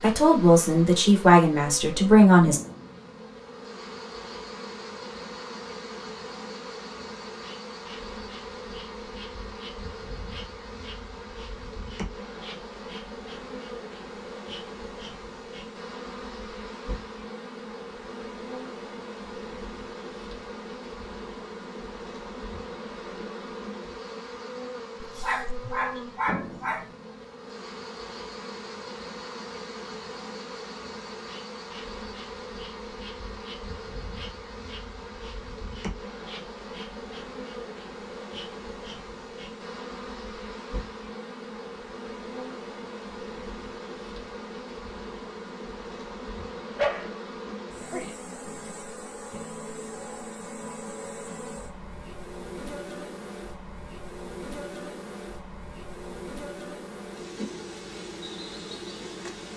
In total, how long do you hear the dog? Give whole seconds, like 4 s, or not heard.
3 s.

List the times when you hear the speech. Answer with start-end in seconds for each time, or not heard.
0.0-2.6.